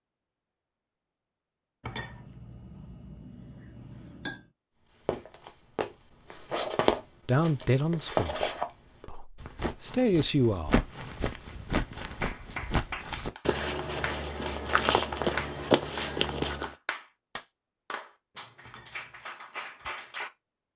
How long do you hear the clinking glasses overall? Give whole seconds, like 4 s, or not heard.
3 s.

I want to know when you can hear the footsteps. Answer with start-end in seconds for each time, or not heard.
5.0-16.8.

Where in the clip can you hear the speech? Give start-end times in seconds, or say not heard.
7.2-10.8.